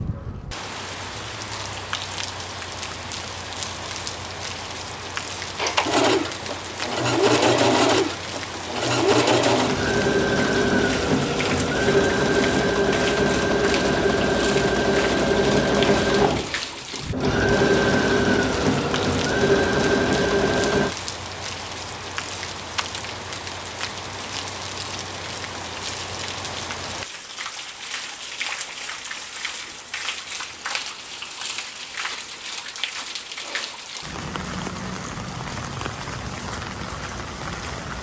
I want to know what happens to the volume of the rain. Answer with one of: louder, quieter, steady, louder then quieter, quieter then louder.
steady.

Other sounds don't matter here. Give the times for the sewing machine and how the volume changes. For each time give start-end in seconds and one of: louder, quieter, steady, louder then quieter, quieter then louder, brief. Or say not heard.
5.5-20.9 steady.